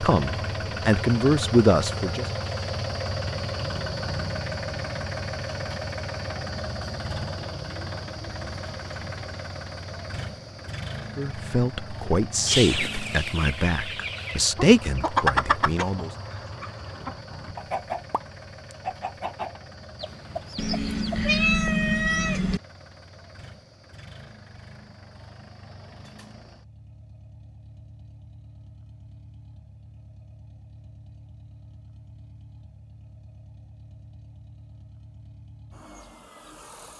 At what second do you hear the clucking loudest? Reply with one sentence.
The volume of the clucking peaks at 15 seconds.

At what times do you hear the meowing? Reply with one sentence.
You can hear the meowing from 20.6 to 22.6 s.